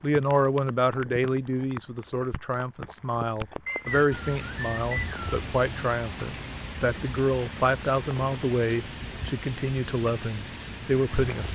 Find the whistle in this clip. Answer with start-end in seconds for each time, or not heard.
3.6-5.2.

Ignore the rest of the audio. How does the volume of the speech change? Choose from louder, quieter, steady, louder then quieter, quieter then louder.
steady.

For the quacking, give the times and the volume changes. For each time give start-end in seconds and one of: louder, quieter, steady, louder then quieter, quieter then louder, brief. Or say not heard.
not heard.